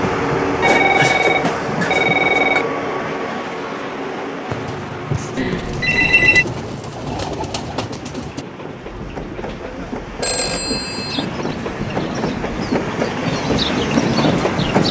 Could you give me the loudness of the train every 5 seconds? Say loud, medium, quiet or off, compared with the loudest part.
loud, medium, loud.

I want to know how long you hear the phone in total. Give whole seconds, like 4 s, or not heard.
4 s.